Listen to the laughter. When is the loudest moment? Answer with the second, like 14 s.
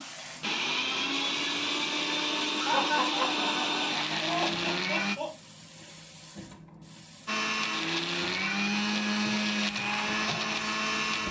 3 s.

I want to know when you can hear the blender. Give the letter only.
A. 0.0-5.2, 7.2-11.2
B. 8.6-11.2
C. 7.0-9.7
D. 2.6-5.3
A.